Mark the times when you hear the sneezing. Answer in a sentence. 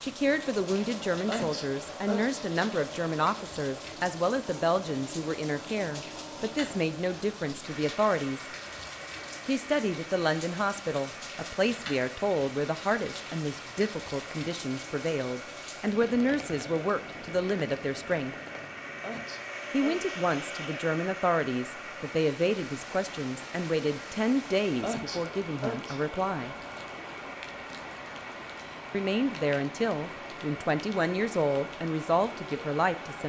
You can hear the sneezing from 1.2 to 2.4 s, from 19.0 to 20.1 s and from 24.8 to 26.0 s.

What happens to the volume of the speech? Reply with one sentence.
The loudness of the speech stays about the same.